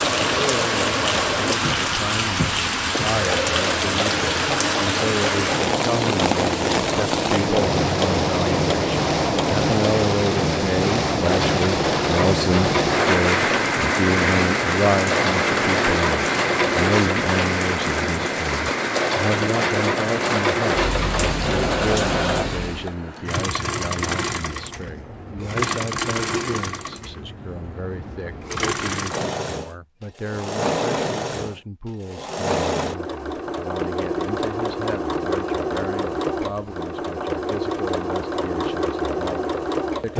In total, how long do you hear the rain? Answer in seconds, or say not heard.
23 s.